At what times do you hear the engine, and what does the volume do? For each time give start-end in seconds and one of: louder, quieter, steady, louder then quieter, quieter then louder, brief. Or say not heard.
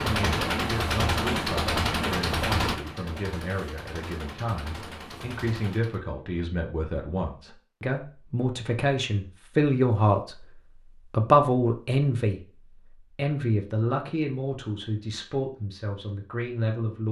0.0-6.0 quieter.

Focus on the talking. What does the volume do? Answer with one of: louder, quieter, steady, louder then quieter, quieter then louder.
louder then quieter.